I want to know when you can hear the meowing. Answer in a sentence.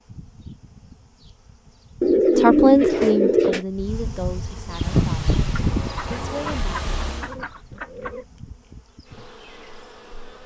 The meowing can't be heard in this clip.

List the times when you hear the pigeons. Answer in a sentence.
You can hear the pigeons from 2.0 to 3.6 s and from 5.5 to 8.2 s.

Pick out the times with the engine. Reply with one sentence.
You can hear the engine from 4.7 to 7.3 s.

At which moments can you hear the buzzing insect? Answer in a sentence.
You can hear the buzzing insect from 0.0 to 10.4 s.